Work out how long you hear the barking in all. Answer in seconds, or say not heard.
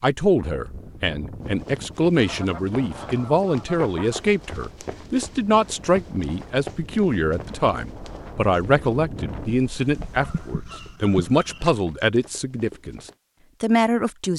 not heard.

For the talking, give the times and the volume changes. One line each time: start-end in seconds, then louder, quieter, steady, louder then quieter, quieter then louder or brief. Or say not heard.
0.0-13.0 steady
13.6-14.3 brief.